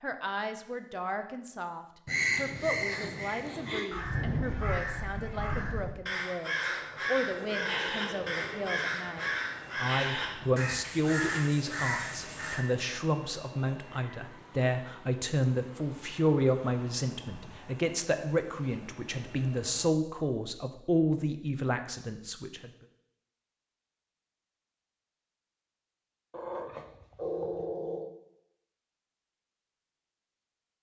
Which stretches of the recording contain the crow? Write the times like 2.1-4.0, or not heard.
2.0-12.6.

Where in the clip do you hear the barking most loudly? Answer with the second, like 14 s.
27 s.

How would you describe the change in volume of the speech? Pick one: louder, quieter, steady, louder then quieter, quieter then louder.
louder.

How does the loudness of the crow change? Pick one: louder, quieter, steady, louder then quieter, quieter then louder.
steady.